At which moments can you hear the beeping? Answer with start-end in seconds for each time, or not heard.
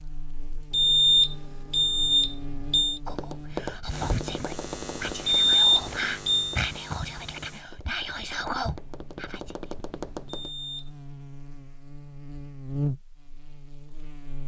0.7-3.0, 5.2-6.6, 10.3-10.9.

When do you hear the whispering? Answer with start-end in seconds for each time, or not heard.
3.0-9.5.